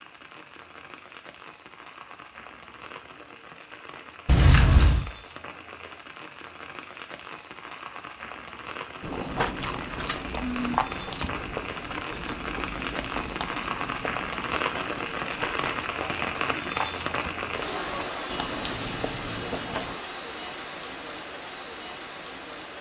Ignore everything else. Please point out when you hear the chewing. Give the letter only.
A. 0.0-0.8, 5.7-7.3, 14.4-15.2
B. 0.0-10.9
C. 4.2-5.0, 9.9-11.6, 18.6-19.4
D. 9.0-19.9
D.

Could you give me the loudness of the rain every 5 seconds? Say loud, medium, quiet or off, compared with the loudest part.
quiet, medium, loud, loud, medium.